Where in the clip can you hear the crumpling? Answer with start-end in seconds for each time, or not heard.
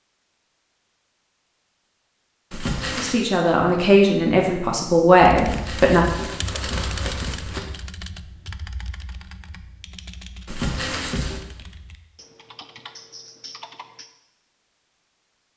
2.5-3.2, 5.3-7.6, 10.4-11.4.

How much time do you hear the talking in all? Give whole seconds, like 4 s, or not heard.
3 s.